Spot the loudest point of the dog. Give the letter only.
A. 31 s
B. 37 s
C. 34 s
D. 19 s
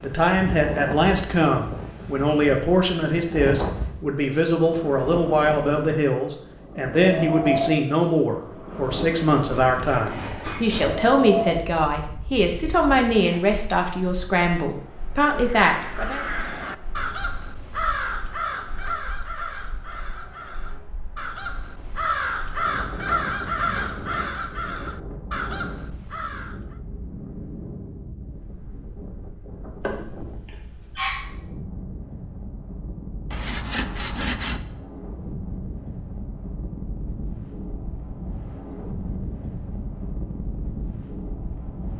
A.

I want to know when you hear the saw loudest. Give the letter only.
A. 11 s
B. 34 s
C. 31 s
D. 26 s
B.